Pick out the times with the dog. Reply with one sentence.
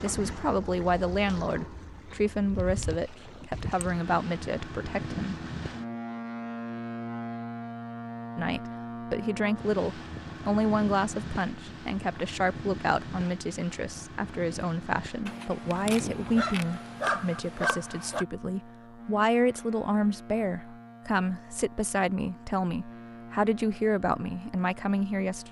You can hear the dog from 15.2 to 18.2 s.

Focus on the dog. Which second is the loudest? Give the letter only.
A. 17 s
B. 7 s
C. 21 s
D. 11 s
A.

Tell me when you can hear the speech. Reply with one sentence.
You can hear the speech from 0.0 to 5.3 s and from 8.3 to 25.4 s.